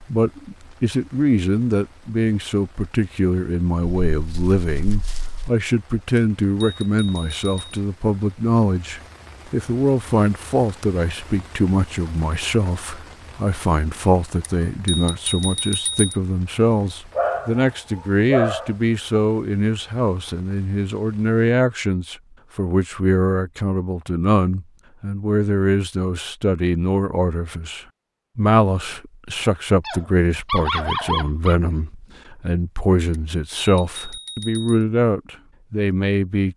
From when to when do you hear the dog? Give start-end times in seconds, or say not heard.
3.8-5.5, 17.1-18.8, 29.8-31.6.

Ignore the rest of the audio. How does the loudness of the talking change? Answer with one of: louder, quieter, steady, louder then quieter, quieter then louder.
steady.